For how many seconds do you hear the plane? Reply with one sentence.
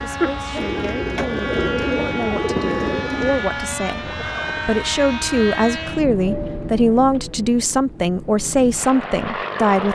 You can hear the plane for 10 seconds altogether.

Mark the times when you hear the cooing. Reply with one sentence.
The cooing can be heard from 0.6 to 3.5 s.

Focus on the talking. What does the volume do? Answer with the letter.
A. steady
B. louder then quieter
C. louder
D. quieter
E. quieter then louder
C.